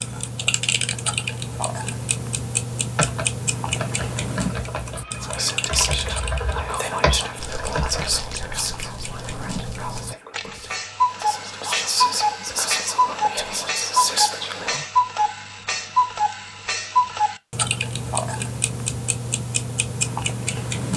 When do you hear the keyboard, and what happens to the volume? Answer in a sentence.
You can hear the keyboard from 3.0 to 8.2 s, getting louder.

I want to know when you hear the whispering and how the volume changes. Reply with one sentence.
You can hear the whispering from 5.2 to 14.8 s, getting quieter then louder.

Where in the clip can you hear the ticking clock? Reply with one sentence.
You can hear the ticking clock from 0.0 to 20.9 s.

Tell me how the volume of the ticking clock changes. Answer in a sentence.
The volume of the ticking clock goes down, then up.